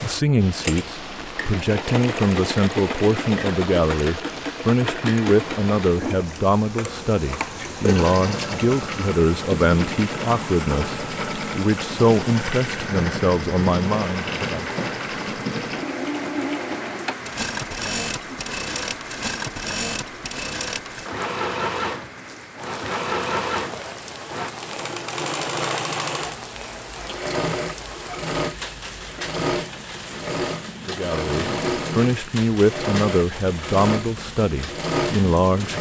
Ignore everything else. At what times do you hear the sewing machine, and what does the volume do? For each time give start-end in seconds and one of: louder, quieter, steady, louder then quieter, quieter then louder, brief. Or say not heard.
0.0-35.7 steady.